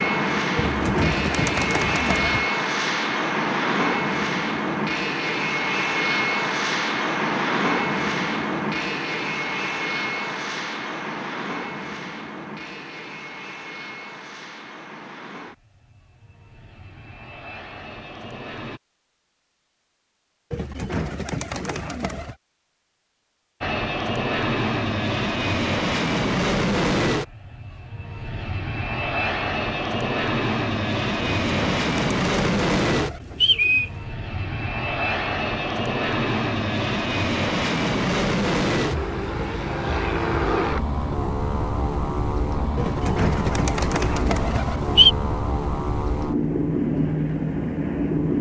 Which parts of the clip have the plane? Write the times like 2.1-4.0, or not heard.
0.0-18.8, 23.6-48.3.